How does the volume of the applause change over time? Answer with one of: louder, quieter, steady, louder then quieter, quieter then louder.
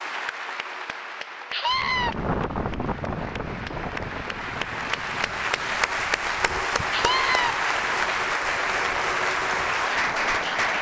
louder.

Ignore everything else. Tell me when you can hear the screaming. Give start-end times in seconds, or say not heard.
1.5-2.1, 6.9-7.5.